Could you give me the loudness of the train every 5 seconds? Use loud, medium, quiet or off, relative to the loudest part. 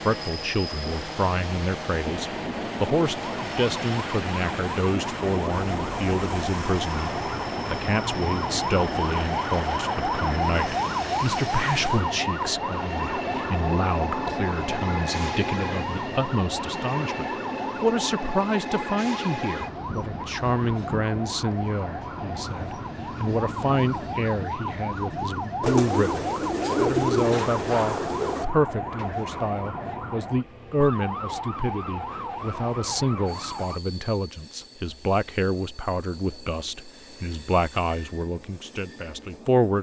loud, loud, loud, loud, medium, medium, quiet, quiet.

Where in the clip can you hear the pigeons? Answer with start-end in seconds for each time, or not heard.
25.6-28.4.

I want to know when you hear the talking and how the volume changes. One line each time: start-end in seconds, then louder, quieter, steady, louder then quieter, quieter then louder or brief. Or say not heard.
0.0-39.7 steady.